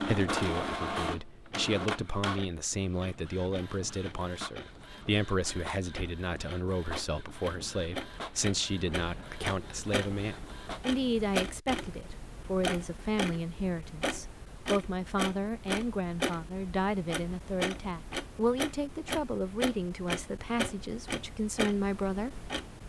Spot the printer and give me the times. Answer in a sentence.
You can hear the printer from 0.0 to 11.0 s.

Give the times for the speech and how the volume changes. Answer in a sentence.
You can hear the speech from 0.0 to 22.5 s, at a steady volume.